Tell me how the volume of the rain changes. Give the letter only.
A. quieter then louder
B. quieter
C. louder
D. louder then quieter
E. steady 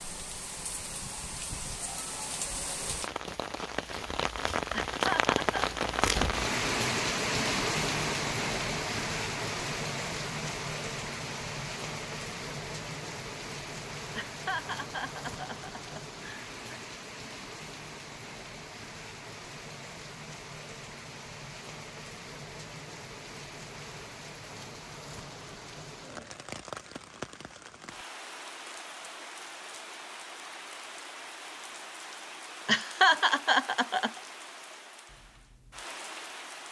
B.